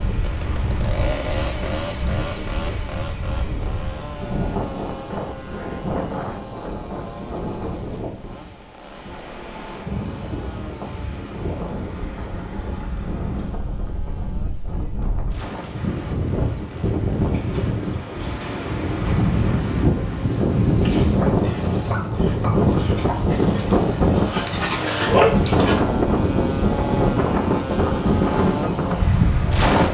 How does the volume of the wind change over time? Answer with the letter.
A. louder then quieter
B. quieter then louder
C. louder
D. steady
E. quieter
C.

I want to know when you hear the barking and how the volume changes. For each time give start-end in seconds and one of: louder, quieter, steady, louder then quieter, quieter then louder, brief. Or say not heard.
20.8-25.9 louder.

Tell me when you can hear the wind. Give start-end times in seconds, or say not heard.
0.0-29.9.